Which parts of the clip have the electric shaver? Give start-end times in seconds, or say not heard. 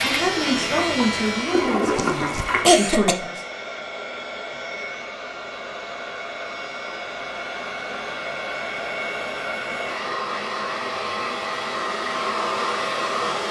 0.0-1.8.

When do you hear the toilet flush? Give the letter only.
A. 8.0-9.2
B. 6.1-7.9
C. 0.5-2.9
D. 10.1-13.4
C.